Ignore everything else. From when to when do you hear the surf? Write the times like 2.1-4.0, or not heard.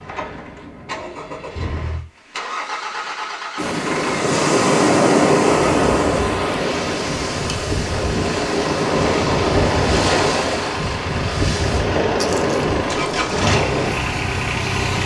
3.5-15.0.